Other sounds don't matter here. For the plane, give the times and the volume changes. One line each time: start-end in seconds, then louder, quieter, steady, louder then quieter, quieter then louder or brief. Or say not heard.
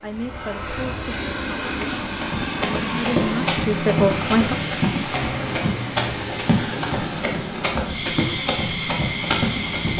0.0-9.9 steady.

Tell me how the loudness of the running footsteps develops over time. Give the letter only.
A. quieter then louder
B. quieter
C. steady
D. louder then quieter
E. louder
C.